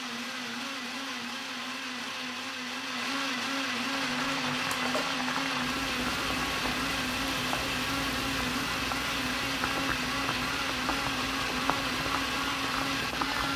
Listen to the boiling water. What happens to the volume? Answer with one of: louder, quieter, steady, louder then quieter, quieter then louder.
steady.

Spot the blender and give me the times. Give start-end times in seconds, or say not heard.
0.0-13.5.